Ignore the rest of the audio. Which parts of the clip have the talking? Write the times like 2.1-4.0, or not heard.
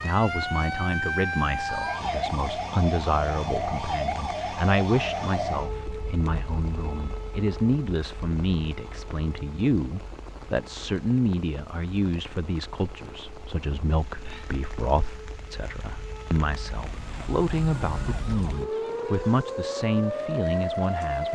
0.0-21.3.